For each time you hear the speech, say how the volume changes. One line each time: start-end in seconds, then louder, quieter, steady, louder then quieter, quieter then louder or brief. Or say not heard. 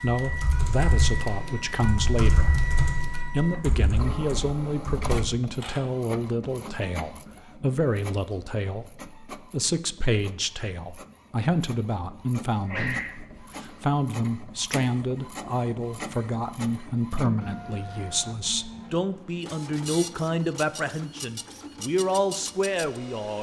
0.0-2.6 brief
3.3-23.3 steady.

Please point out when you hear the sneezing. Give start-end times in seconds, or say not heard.
12.5-13.8.